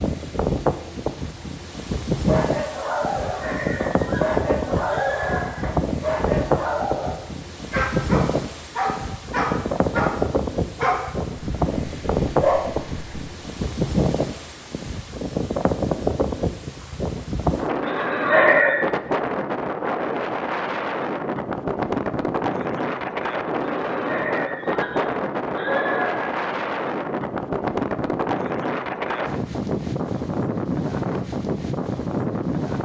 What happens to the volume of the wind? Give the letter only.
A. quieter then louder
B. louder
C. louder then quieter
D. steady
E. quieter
D.